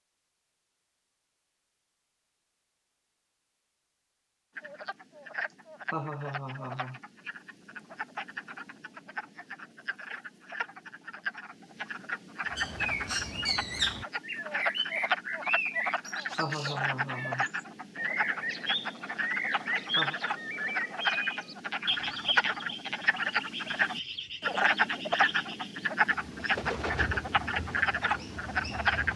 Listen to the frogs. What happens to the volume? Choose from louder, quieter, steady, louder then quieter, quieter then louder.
louder.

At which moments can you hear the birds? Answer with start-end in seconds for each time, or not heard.
12.5-29.1.